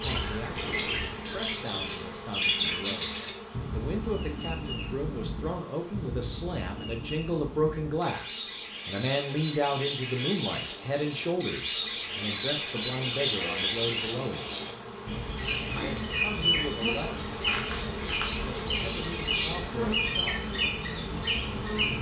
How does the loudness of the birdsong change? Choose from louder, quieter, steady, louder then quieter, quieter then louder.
quieter then louder.